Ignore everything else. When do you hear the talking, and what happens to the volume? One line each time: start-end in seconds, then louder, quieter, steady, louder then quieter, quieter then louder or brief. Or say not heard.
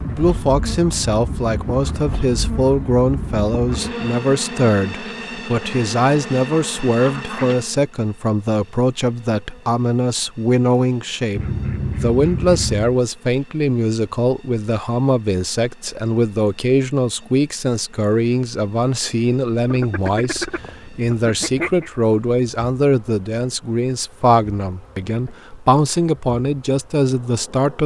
0.1-27.8 steady.